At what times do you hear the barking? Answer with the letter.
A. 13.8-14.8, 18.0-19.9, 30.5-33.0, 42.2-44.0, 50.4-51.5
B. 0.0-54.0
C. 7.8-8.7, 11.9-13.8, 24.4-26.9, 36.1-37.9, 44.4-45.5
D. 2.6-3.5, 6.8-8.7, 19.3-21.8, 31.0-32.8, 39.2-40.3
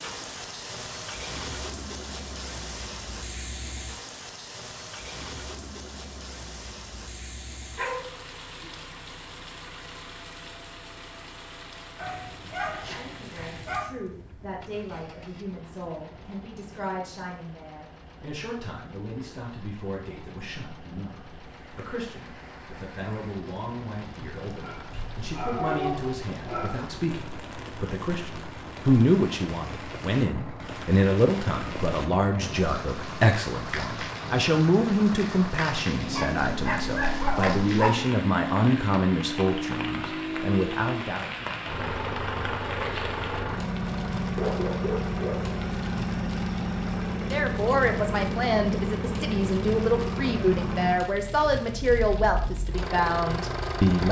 C.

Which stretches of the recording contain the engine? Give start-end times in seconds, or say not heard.
0.0-54.0.